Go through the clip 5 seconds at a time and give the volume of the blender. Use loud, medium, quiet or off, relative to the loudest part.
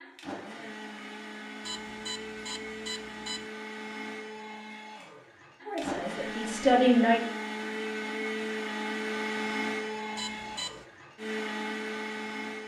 medium, loud, loud.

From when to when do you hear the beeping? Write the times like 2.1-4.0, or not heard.
1.6-3.5, 10.2-10.8.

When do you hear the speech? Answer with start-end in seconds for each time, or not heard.
5.7-7.2.